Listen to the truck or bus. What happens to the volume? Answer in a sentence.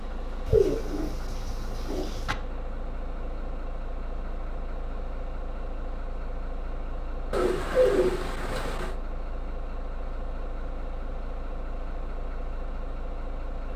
The loudness of the truck or bus stays about the same.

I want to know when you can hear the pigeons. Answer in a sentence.
You can hear the pigeons from 0.5 to 2.4 s and from 7.3 to 8.9 s.